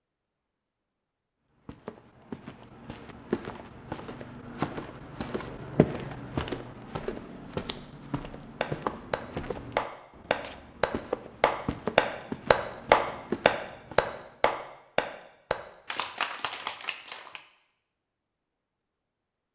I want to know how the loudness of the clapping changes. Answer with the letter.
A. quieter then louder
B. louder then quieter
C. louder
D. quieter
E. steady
B.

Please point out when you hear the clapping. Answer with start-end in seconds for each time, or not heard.
8.6-17.4.